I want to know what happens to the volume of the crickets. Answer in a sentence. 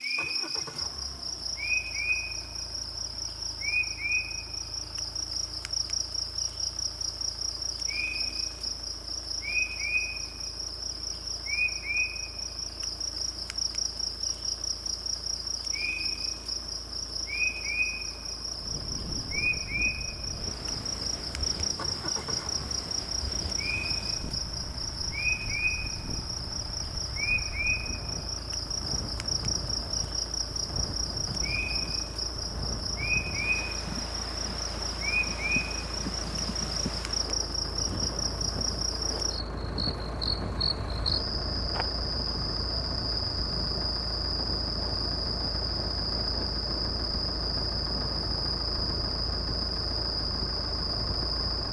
The volume of the crickets stays about the same.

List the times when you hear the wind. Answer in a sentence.
You can hear the wind from 18.6 to 51.6 s.